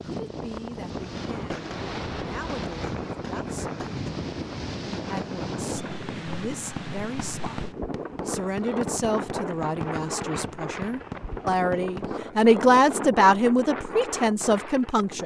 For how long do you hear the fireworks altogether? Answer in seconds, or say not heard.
11 s.